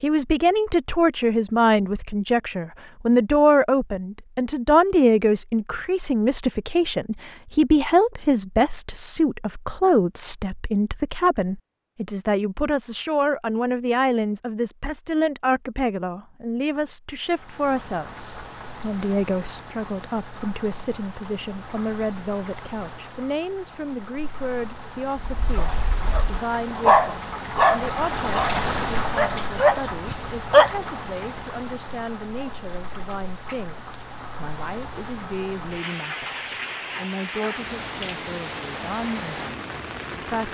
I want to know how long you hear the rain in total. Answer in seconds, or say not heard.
23 s.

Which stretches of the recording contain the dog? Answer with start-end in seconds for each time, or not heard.
25.3-30.8.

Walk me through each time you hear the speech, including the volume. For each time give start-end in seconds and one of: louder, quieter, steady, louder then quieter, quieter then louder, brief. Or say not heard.
0.0-40.5 quieter.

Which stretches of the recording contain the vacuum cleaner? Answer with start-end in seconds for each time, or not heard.
not heard.